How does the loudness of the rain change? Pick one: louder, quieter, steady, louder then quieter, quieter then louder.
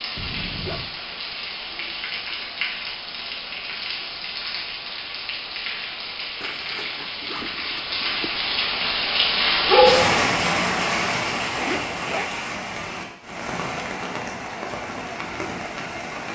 louder then quieter.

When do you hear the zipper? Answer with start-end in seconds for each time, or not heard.
0.1-0.9, 6.4-8.4, 11.6-12.3.